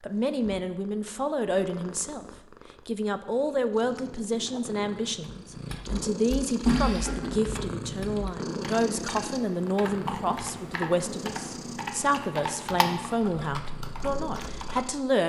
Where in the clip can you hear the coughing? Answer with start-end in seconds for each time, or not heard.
6.7-7.3.